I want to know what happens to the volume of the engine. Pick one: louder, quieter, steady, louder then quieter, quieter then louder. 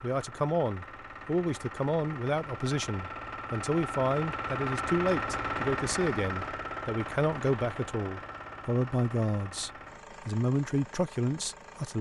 louder then quieter.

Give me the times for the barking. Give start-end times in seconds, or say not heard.
not heard.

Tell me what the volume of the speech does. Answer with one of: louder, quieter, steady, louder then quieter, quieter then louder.
steady.